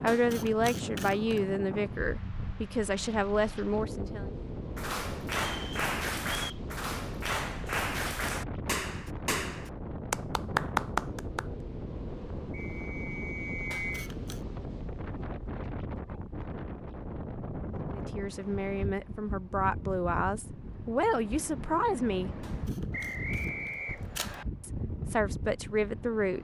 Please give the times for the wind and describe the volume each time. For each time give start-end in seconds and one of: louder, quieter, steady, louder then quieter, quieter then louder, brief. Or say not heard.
0.0-26.3 steady.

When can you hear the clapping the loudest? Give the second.
11 s.